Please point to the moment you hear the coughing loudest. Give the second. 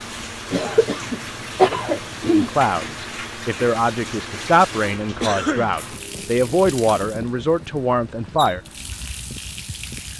2 s.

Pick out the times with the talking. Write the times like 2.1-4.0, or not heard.
2.3-8.6.